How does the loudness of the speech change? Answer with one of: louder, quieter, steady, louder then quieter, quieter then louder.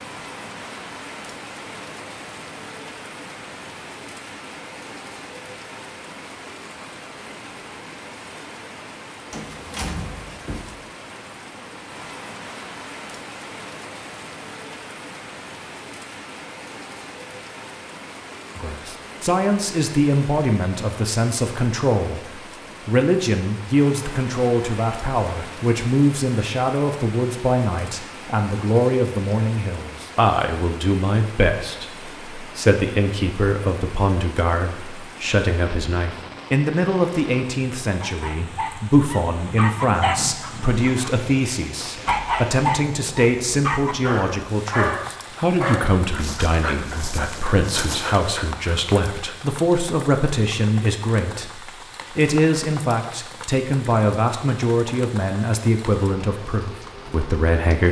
steady.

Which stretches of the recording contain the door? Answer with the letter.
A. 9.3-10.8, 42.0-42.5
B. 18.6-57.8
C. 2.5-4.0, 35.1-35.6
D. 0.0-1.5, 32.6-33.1
A.